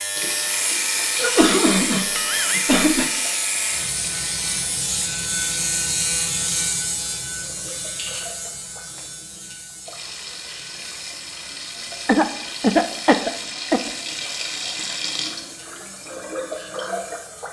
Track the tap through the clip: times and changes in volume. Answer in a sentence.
You can hear the tap from 0.0 to 17.4 s, getting quieter then louder.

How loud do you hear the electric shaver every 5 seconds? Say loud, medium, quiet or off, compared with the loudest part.
loud, loud, quiet, quiet.